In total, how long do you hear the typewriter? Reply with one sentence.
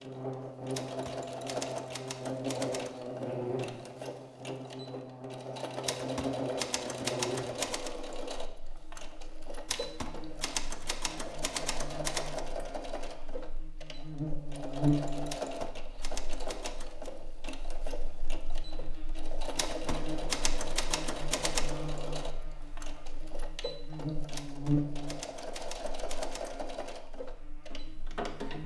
You can hear the typewriter for 13 seconds altogether.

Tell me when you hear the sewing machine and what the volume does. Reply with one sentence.
You can hear the sewing machine from 0.0 to 28.6 s, at a steady volume.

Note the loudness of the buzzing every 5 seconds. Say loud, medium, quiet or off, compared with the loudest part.
loud, loud, loud, medium, loud, medium.